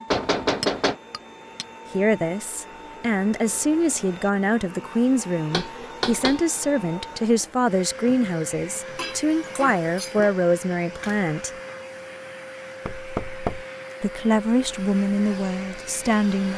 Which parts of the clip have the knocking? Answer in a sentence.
The knocking can be heard from 0.1 to 0.9 s, from 5.5 to 6.4 s and from 12.8 to 13.7 s.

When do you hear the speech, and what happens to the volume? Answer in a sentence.
The speech can be heard from 1.9 to 11.5 s, at a steady volume; and briefly from 14.0 to 16.5 s.